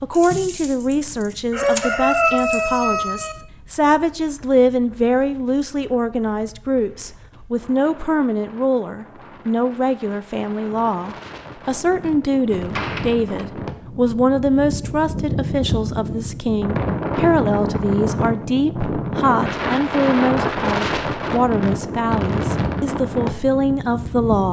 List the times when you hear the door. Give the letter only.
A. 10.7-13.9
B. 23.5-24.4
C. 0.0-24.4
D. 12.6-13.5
D.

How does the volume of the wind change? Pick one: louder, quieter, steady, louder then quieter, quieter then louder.
louder.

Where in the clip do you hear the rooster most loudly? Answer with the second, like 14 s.
2 s.